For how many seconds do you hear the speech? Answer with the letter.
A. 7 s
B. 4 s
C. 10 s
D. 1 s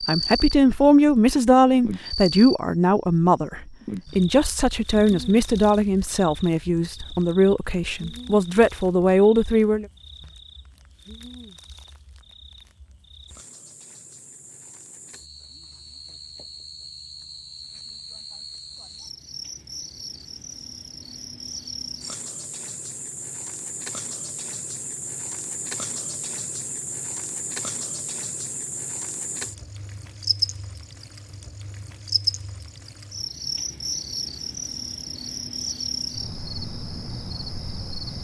C.